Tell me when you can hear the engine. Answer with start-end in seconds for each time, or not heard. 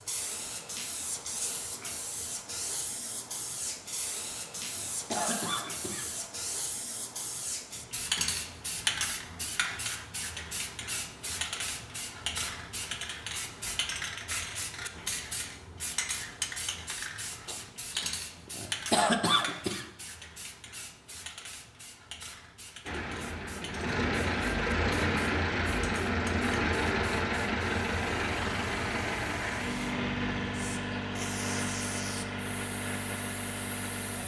22.9-34.2.